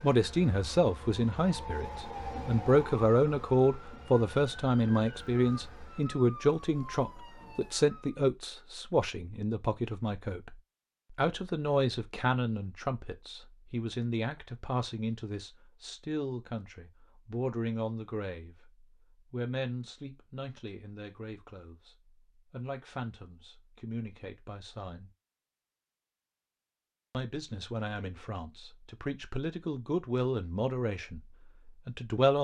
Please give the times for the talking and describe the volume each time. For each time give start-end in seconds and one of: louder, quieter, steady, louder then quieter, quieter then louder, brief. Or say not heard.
0.0-25.1 quieter
27.1-32.3 louder then quieter.